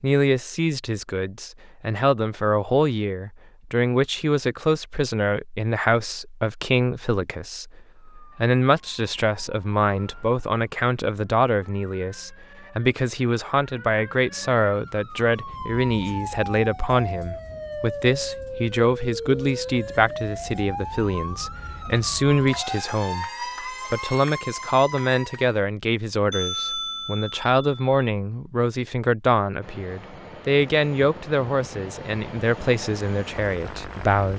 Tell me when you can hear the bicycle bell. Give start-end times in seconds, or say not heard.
26.3-27.9.